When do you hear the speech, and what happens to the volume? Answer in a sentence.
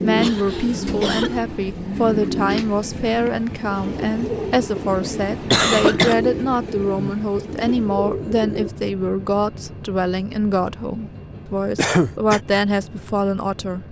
The speech can be heard from 0.0 to 13.8 s, at a steady volume.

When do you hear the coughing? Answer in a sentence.
The coughing can be heard from 0.2 to 1.4 s, from 5.5 to 6.2 s and from 11.8 to 12.4 s.